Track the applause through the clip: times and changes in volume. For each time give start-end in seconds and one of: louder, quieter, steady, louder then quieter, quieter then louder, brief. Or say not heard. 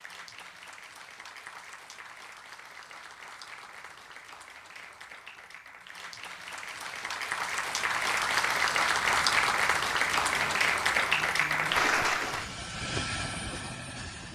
0.0-12.6 louder.